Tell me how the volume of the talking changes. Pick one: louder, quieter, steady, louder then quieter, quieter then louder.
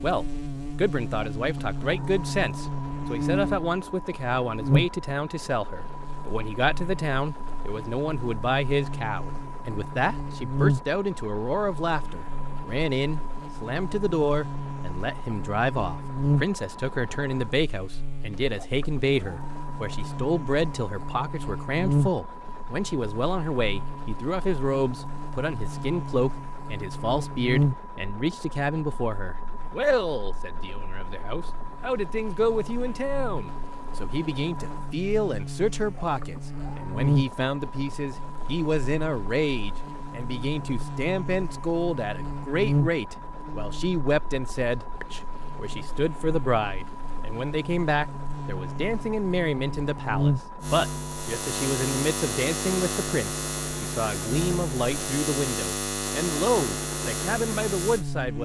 steady.